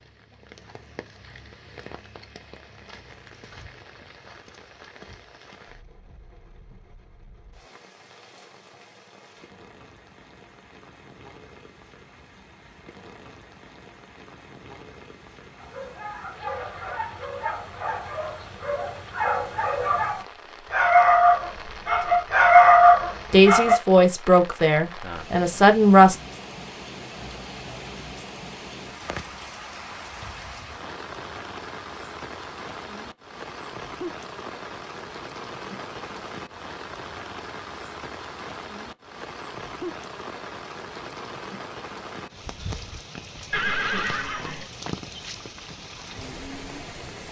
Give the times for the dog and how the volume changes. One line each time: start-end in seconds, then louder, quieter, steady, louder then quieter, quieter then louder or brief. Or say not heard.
15.6-23.8 louder.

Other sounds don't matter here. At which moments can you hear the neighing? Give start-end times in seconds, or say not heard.
43.5-44.6.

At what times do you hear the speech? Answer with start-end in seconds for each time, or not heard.
23.3-26.1.